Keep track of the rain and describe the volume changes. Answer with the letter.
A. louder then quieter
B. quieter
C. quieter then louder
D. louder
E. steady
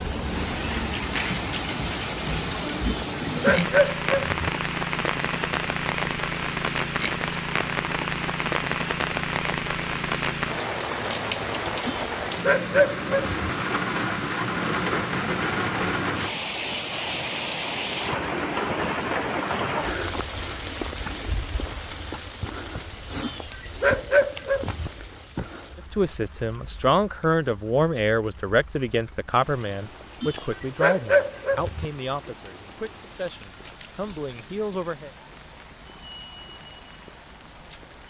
B.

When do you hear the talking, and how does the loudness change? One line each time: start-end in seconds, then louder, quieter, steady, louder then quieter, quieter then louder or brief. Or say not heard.
25.9-35.1 quieter.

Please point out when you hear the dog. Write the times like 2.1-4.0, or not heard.
2.9-4.4, 11.8-13.4, 23.2-24.9, 30.2-31.9.